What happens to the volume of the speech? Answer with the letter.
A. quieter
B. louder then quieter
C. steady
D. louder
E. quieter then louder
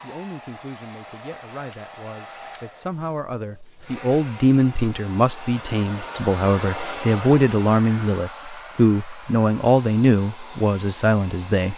D.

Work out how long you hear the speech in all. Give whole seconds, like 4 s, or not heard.
12 s.